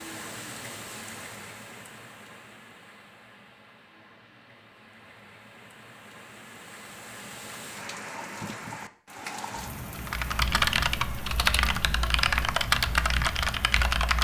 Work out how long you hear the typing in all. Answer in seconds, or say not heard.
4 s.